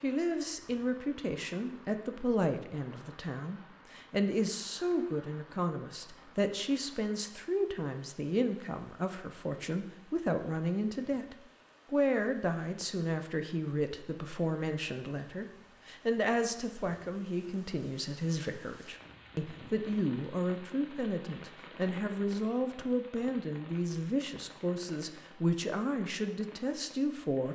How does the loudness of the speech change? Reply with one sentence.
The loudness of the speech stays about the same.